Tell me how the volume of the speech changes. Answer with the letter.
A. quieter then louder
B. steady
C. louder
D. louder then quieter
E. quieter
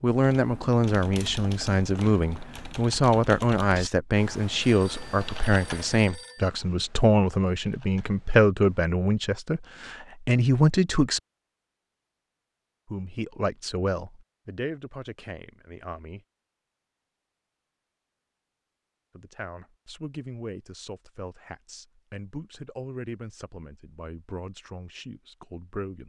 E.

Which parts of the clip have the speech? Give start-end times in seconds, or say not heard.
0.0-11.2, 12.8-16.2, 19.1-26.0.